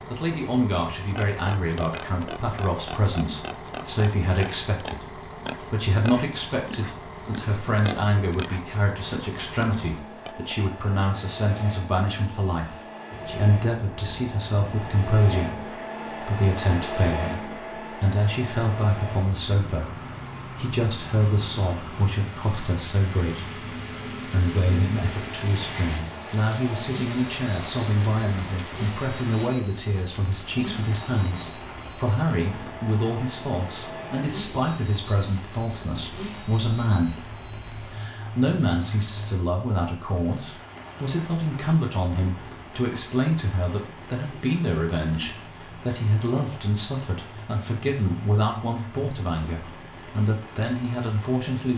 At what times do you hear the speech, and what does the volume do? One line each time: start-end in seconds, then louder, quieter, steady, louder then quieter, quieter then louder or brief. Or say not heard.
0.1-51.7 steady.